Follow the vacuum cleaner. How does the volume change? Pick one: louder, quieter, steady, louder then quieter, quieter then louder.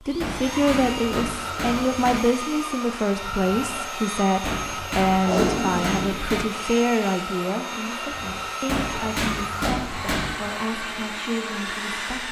steady.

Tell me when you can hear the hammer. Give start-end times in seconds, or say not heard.
0.2-2.2, 4.5-6.5, 8.7-10.6.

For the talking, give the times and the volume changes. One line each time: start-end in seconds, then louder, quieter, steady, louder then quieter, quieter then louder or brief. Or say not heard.
0.1-12.2 quieter.